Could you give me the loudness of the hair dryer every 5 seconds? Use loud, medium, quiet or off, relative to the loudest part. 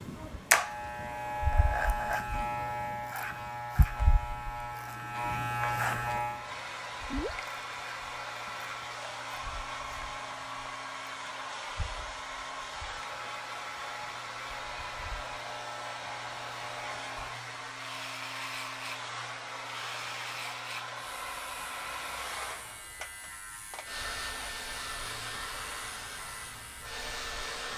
quiet, loud, loud, loud, loud, loud.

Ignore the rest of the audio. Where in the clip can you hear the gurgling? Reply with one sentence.
The gurgling can be heard from 7.0 to 7.5 s.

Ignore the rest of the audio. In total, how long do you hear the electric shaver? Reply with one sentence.
You can hear the electric shaver for 28 seconds altogether.